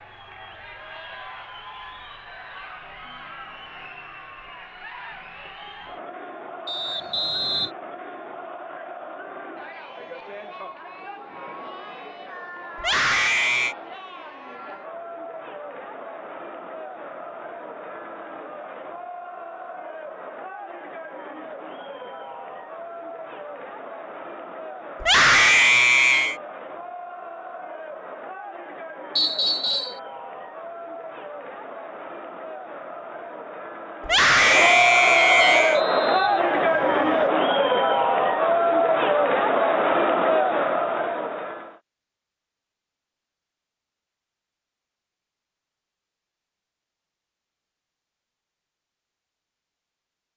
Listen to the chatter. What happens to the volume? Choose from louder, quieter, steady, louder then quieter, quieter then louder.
louder.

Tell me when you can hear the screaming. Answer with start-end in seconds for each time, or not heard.
12.8-13.8, 25.0-26.4, 34.0-35.8.